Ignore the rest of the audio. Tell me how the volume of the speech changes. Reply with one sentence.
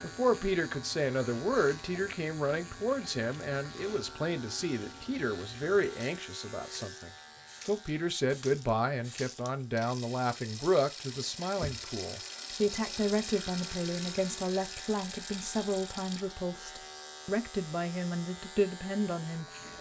The volume of the speech stays about the same.